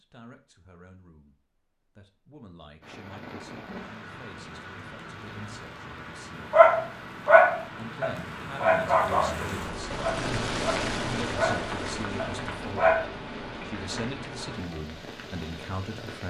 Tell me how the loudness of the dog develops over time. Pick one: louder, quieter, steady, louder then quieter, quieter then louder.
quieter.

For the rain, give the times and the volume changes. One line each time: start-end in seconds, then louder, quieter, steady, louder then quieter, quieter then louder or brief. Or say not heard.
2.8-16.2 louder then quieter.